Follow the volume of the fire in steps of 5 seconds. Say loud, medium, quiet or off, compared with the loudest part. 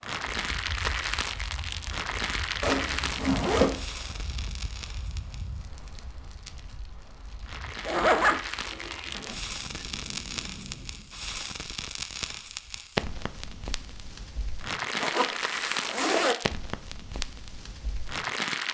loud, medium, loud, loud.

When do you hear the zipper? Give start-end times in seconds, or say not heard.
2.6-3.8, 7.8-9.8, 15.0-16.4.